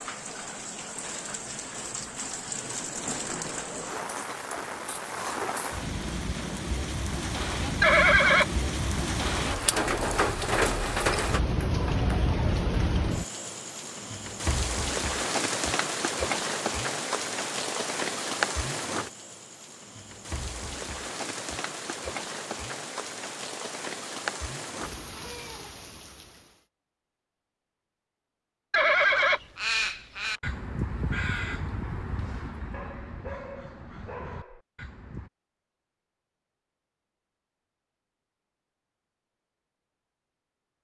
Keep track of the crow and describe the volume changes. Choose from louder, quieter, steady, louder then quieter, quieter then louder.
quieter.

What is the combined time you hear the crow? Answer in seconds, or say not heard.
6 s.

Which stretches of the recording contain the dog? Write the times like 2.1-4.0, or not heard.
32.7-34.6.